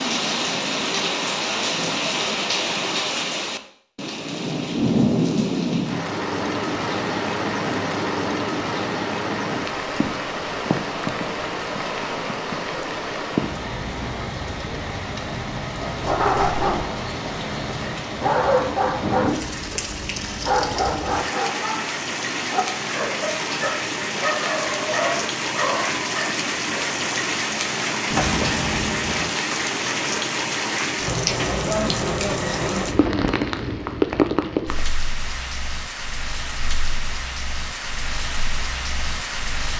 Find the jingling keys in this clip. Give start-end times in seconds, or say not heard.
28.1-29.2.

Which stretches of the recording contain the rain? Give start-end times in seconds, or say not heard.
0.0-39.7.